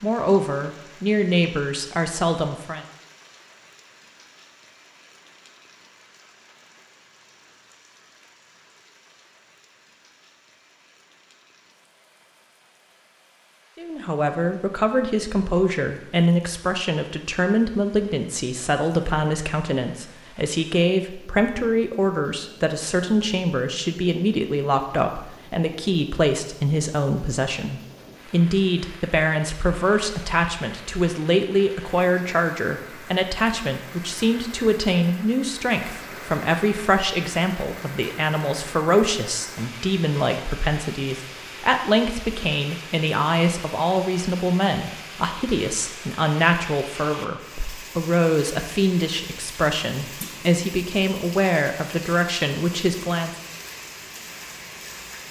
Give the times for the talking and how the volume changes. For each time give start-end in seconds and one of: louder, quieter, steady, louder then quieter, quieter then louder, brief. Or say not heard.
0.0-2.9 brief
13.8-53.4 steady.